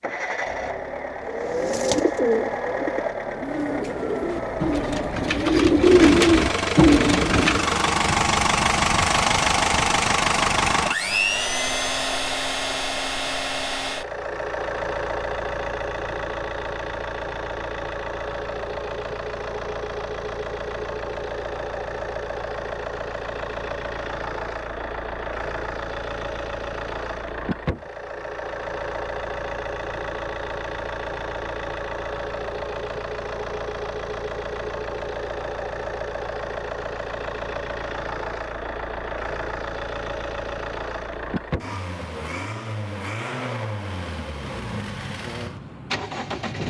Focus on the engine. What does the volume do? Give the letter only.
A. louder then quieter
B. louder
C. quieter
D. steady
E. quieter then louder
C.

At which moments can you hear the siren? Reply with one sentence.
The siren can't be heard in this clip.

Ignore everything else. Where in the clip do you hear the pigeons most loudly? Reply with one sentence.
The loudest moment of the pigeons is at 6 seconds.